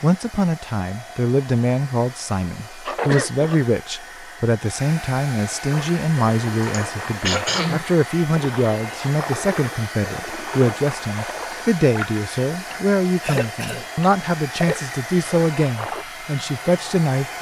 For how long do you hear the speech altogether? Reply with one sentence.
The speech can be heard for 17 seconds in total.